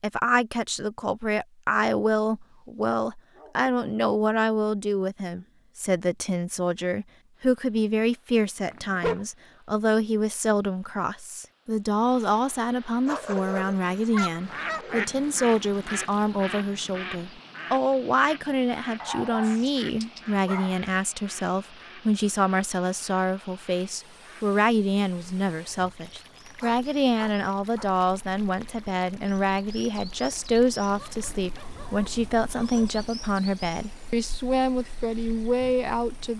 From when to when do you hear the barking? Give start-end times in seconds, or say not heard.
3.4-3.9, 8.7-9.2, 13.1-15.1, 19.0-20.8, 26.6-27.9, 31.0-33.0.